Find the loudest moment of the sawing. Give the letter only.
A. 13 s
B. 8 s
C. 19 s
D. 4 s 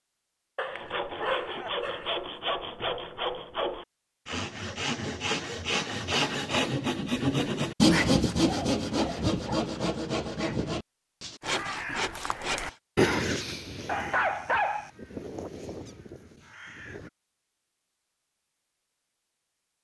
B.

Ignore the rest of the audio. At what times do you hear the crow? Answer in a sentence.
The crow can be heard from 11.4 to 17.1 s.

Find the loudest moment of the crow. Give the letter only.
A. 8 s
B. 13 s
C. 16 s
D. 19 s
B.